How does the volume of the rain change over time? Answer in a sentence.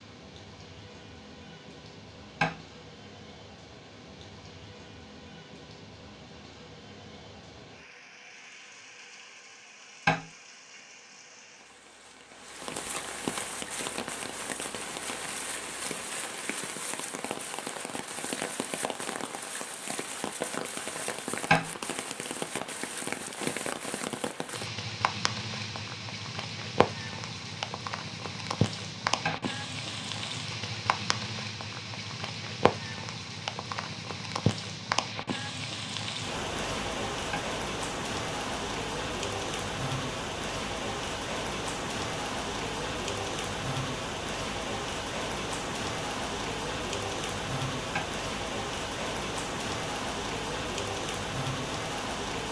The volume of the rain goes up.